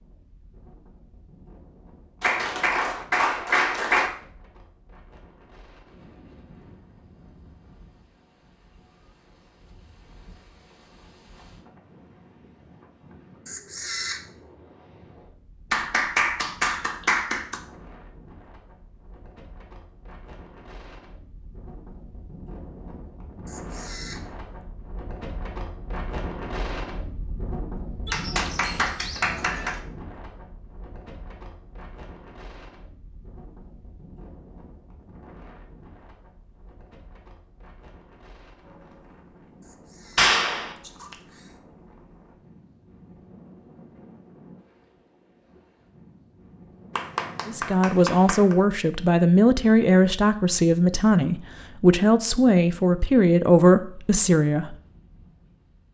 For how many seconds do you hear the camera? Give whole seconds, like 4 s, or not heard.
4 s.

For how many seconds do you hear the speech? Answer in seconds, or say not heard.
7 s.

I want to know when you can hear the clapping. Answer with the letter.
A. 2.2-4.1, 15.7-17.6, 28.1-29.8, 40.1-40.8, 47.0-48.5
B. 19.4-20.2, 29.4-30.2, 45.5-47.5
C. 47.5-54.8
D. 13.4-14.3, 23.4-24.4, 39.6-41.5
A.